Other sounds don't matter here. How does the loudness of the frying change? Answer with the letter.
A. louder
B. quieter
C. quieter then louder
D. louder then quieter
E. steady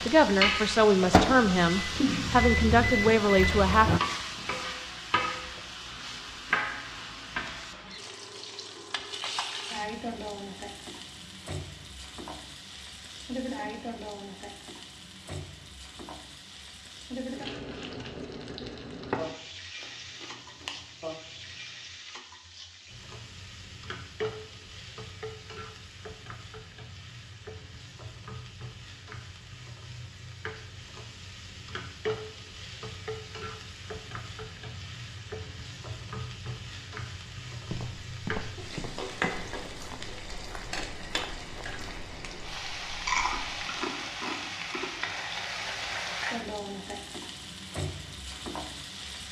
C.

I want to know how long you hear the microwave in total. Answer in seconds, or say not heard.
4 s.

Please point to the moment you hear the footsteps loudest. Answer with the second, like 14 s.
38 s.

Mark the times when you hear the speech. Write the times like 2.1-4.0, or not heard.
0.1-3.9.